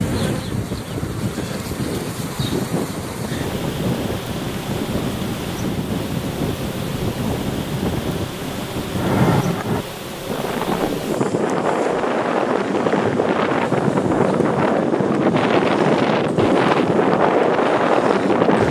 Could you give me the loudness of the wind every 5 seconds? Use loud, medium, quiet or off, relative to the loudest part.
medium, medium, loud, loud.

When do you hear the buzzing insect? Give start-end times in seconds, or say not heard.
0.0-18.6.